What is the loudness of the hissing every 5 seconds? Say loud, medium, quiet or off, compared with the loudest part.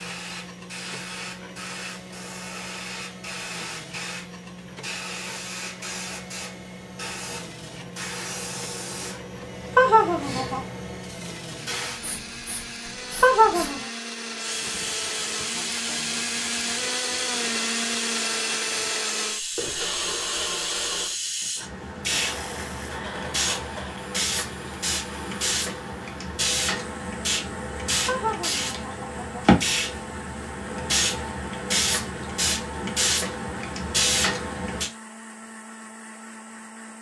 medium, medium, medium, medium, loud, loud, loud, off.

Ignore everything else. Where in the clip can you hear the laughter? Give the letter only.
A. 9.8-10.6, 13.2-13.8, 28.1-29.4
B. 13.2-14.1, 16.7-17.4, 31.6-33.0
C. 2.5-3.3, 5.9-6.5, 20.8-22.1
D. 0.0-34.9
A.